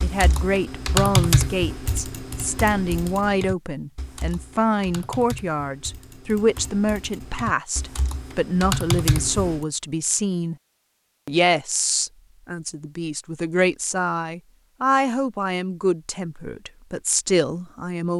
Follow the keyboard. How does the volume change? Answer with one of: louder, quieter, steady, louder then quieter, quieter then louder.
quieter then louder.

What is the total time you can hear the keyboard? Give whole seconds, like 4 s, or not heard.
10 s.